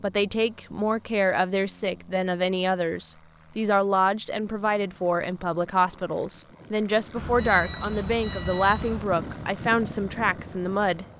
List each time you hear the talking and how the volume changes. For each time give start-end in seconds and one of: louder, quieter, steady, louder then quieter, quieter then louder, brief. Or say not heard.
0.0-11.1 steady.